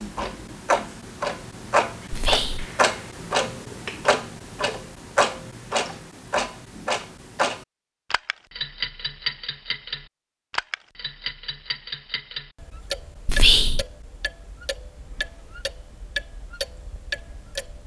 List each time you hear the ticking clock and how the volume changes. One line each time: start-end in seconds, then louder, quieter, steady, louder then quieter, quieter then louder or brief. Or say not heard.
0.0-17.8 quieter.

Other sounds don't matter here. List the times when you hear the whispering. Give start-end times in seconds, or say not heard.
2.1-2.7, 13.2-13.8.